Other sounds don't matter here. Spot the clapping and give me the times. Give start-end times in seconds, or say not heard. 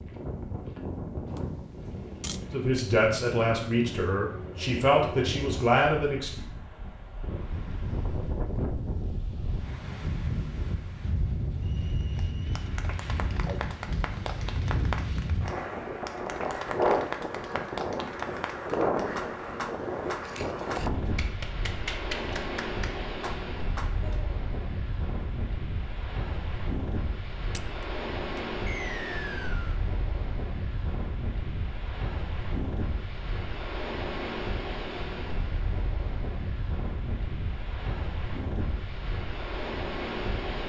12.0-24.3.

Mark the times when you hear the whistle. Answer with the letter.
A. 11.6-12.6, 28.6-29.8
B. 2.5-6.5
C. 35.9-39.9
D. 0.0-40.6
A.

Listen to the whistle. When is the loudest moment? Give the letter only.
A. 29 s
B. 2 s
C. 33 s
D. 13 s
A.